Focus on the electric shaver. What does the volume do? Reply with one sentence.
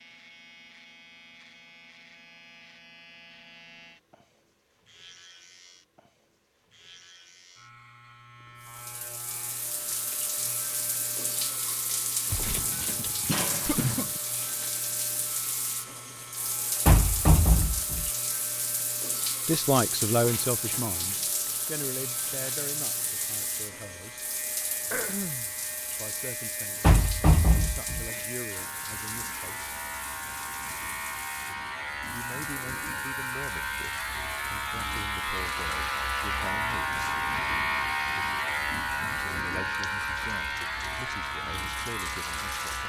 The loudness of the electric shaver goes up.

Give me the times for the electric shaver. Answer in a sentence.
The electric shaver can be heard from 0.0 to 42.8 s.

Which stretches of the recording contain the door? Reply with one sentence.
You can hear the door from 16.9 to 18.1 s and from 26.8 to 28.1 s.